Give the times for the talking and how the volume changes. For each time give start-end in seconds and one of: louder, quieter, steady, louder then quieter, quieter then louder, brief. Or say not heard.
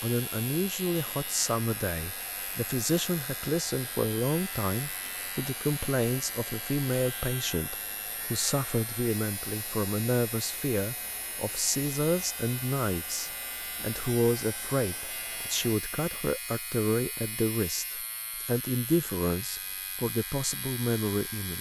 0.0-21.5 steady.